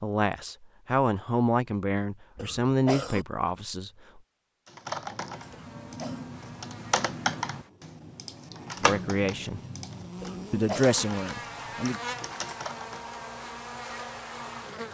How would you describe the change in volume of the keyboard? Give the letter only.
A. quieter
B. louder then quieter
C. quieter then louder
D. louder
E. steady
B.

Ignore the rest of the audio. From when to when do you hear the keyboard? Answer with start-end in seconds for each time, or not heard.
4.7-13.2.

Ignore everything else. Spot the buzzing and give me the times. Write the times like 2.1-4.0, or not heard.
5.3-14.8.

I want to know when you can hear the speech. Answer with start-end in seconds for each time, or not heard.
0.0-4.2, 8.8-9.6, 10.5-12.0.